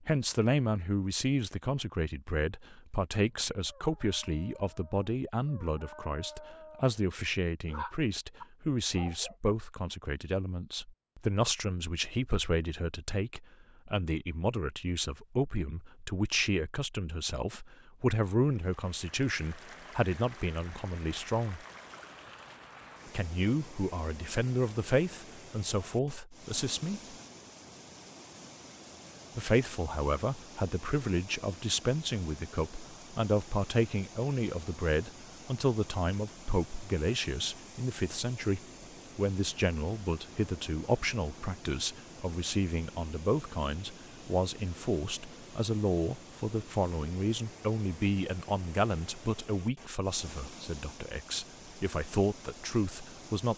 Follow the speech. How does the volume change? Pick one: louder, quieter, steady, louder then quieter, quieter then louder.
steady.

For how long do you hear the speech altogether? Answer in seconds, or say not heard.
50 s.